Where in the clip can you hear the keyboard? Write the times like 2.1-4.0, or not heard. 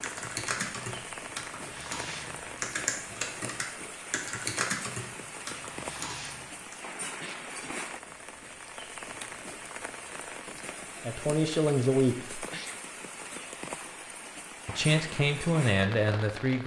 0.0-6.8.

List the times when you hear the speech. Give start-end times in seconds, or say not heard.
11.1-12.4, 14.7-16.6.